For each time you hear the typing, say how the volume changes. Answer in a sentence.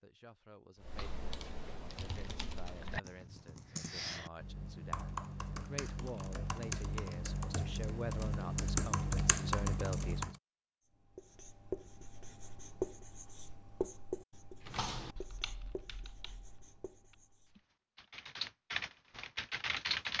You can hear the typing from 0.8 to 10.3 s, getting louder; and from 14.6 to 20.1 s, getting quieter then louder.